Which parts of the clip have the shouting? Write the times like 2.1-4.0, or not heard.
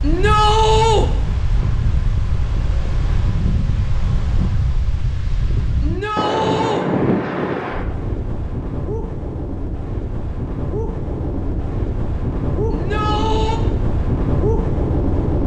0.0-1.1, 5.8-6.8, 12.7-13.6.